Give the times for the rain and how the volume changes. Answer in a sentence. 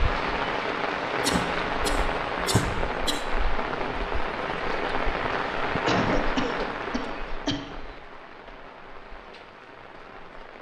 You can hear the rain from 0.0 to 10.5 s, getting quieter.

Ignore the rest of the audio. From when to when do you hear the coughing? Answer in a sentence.
The coughing can be heard from 1.2 to 3.2 s and from 5.8 to 7.6 s.